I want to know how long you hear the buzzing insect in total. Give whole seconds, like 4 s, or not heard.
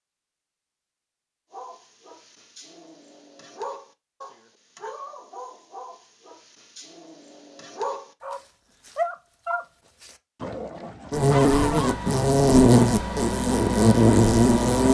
4 s.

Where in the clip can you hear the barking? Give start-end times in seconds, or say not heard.
1.5-12.0.